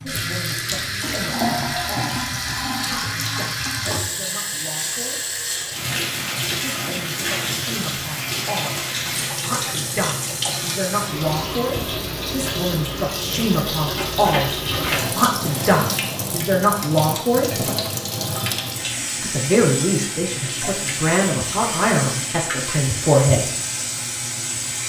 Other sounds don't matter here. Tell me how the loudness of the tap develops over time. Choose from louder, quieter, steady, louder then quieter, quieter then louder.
steady.